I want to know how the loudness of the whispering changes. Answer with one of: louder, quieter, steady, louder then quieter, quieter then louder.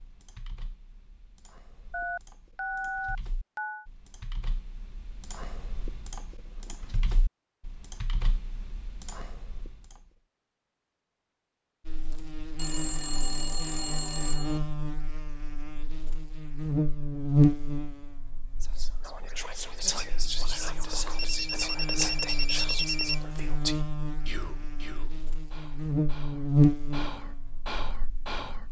quieter then louder.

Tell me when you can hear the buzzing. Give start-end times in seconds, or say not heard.
11.8-28.6.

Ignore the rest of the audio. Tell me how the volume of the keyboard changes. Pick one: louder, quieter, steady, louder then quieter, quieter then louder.
louder.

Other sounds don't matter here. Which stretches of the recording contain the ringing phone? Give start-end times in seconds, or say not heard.
1.9-3.9, 12.6-14.6, 21.1-23.2.